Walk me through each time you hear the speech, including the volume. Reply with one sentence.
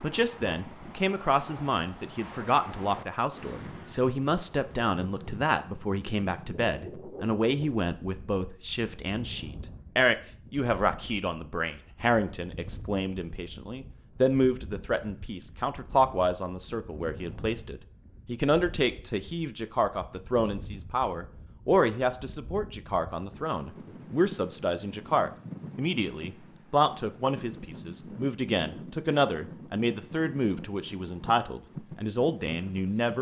The speech can be heard from 0.0 to 33.1 s, at a steady volume.